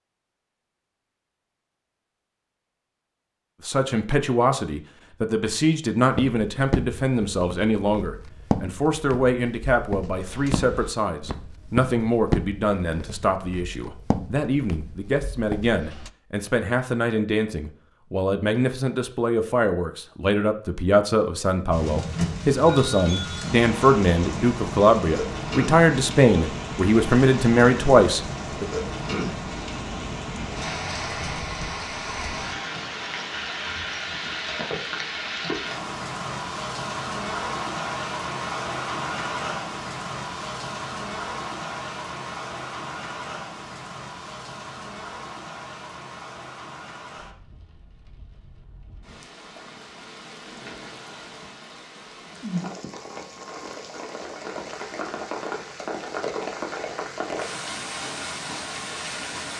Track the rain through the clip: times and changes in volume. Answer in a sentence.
You can hear the rain from 21.7 to 59.5 s, getting quieter then louder.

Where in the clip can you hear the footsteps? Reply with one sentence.
The footsteps can be heard from 6.1 to 16.1 s.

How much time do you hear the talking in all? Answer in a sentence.
The talking can be heard for 25 seconds in total.